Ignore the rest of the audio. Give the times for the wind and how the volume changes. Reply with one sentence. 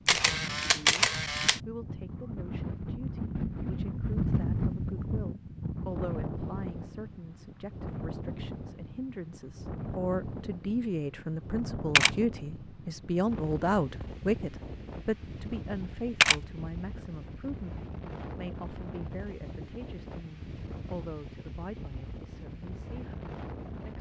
The wind can be heard from 0.0 to 23.9 s, getting quieter.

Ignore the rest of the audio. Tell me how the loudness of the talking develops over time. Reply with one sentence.
The volume of the talking goes up, then down.